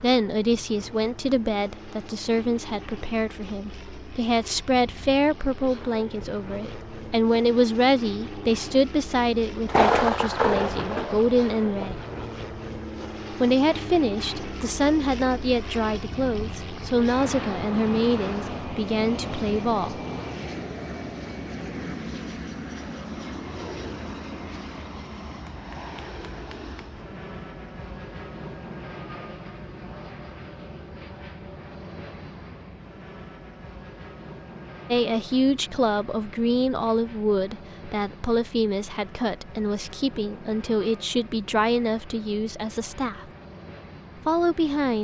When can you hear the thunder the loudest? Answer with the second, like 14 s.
10 s.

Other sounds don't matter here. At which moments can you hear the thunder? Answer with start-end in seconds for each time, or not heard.
9.7-12.2.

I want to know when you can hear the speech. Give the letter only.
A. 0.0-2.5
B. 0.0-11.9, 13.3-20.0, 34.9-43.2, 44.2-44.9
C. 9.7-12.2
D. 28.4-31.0
B.